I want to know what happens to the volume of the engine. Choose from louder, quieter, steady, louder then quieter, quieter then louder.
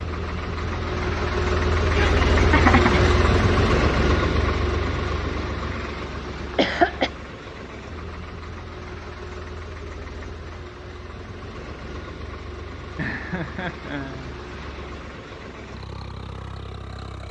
quieter.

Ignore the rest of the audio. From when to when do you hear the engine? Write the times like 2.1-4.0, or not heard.
0.0-17.2.